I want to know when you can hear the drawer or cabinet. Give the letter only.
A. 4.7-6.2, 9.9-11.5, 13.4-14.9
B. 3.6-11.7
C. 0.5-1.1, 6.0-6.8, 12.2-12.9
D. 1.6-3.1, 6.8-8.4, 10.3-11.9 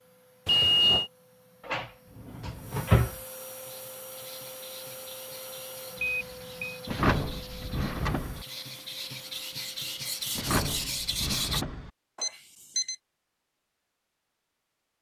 D.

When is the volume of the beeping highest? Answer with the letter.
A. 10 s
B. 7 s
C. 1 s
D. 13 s
C.